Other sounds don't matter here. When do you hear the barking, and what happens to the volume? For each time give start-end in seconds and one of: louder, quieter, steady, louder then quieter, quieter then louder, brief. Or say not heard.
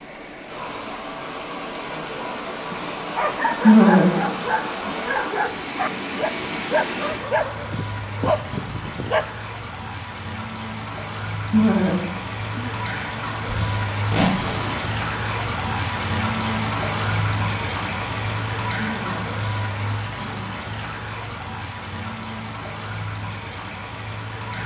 3.1-9.2 steady.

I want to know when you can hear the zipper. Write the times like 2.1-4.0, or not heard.
13.4-14.9.